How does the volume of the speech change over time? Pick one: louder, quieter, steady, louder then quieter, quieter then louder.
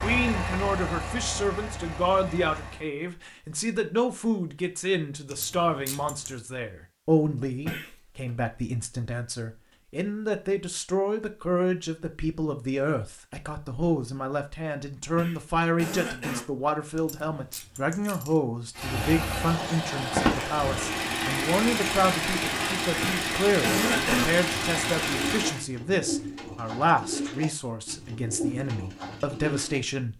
steady.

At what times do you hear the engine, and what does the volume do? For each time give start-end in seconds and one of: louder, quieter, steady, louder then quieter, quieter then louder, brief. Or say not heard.
0.0-2.9 brief
18.8-25.6 steady.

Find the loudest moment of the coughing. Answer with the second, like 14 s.
24 s.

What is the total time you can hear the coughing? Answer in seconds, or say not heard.
3 s.